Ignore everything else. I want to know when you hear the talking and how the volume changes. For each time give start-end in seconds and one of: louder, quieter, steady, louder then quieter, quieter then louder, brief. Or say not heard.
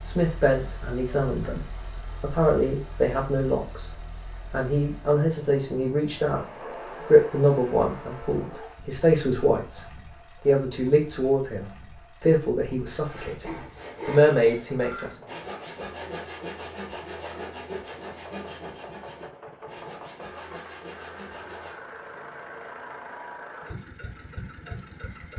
0.0-15.2 steady.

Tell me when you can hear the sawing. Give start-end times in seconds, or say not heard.
13.1-21.8.